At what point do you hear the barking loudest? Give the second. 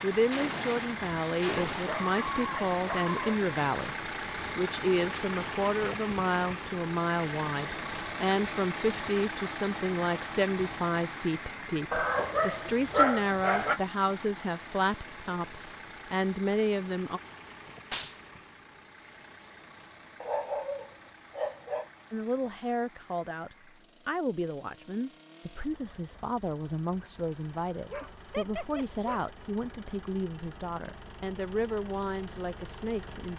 13 s.